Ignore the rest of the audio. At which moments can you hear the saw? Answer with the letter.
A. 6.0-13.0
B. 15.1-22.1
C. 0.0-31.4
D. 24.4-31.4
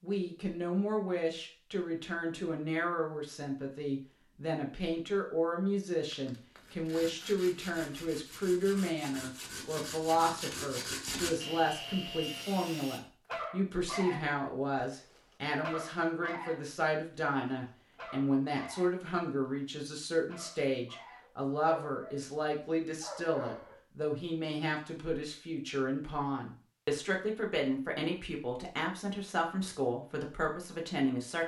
A.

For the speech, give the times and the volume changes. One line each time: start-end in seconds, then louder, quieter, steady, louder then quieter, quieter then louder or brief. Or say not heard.
0.0-31.4 steady.